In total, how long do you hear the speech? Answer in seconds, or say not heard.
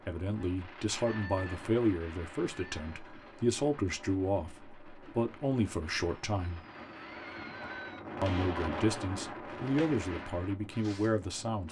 10 s.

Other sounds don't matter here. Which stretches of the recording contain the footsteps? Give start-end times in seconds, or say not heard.
not heard.